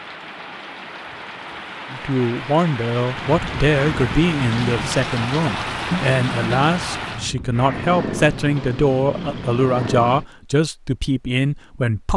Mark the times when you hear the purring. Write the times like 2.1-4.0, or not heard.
3.1-10.2.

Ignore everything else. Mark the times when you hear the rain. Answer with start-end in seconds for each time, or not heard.
0.0-7.3.